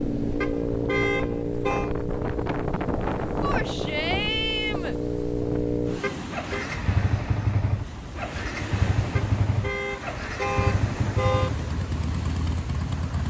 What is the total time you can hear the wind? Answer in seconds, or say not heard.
13 s.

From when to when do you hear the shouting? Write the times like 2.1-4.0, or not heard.
3.4-5.0.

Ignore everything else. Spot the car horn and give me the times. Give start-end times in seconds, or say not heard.
0.4-1.9, 6.0-6.7, 9.2-11.6.